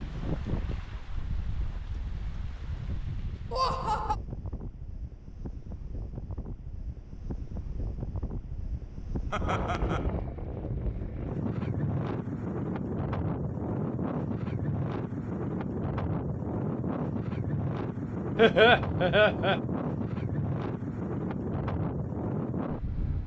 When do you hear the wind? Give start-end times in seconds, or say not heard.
0.0-23.2.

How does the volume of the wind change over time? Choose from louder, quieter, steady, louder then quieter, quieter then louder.
louder.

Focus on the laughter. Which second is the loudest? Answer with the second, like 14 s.
19 s.